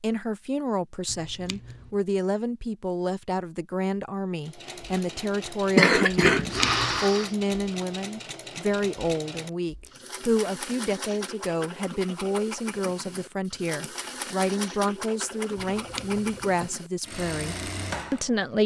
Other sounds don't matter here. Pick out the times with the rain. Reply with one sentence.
The rain can't be heard in this clip.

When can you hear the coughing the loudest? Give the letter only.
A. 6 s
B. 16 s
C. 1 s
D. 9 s
A.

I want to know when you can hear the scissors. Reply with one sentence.
The scissors can be heard from 1.1 to 1.9 s, from 6.3 to 7.0 s and from 15.6 to 16.7 s.